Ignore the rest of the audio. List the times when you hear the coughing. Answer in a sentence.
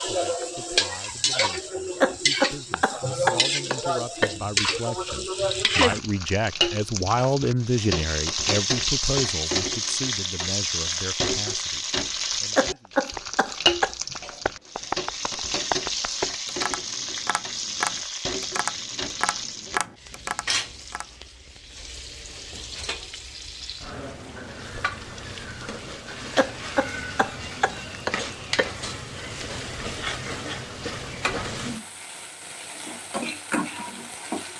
The coughing can be heard from 2.0 to 4.3 s, from 12.6 to 13.9 s and from 26.4 to 28.8 s.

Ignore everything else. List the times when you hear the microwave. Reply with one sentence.
You can't hear the microwave here.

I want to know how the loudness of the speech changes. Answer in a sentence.
The volume of the speech goes up, then down.